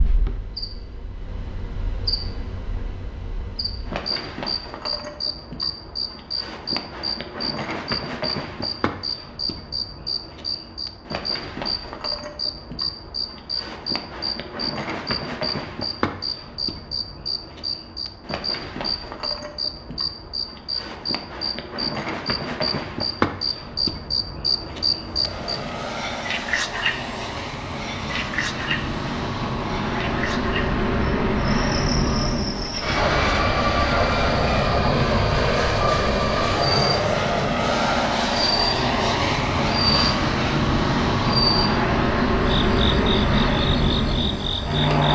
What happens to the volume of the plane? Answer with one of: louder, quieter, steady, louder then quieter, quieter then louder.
louder.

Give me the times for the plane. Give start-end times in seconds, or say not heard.
25.1-45.1.